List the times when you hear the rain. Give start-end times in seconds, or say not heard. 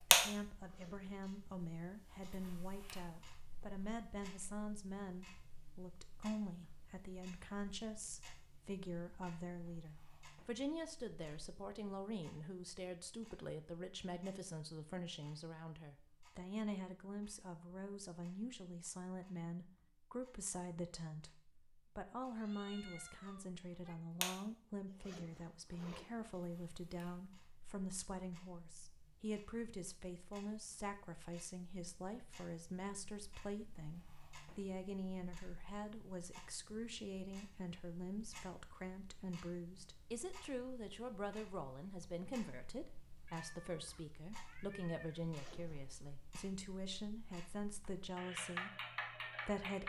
not heard.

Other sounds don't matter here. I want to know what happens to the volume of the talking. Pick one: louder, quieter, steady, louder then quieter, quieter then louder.
steady.